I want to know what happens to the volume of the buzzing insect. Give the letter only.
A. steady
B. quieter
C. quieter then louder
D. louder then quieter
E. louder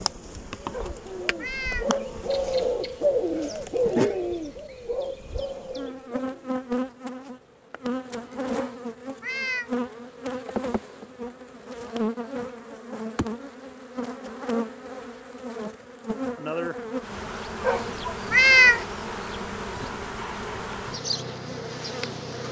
A.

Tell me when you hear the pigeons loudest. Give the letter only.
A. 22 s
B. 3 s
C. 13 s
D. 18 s
B.